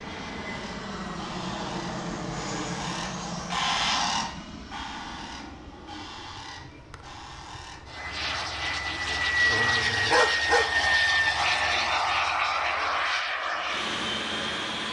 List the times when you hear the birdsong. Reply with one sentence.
You can hear the birdsong from 0.0 to 8.1 s.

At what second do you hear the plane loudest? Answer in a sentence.
The volume of the plane peaks at 11 seconds.